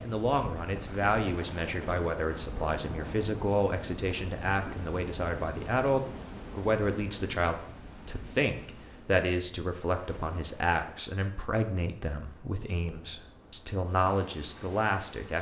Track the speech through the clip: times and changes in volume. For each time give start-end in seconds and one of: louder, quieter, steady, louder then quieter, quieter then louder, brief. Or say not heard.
0.0-15.3 steady.